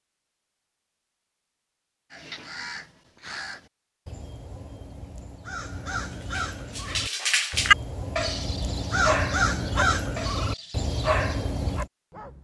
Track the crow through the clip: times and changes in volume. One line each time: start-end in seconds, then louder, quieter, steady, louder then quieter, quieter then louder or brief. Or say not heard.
2.1-11.9 louder.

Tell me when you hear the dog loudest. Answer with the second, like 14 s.
8 s.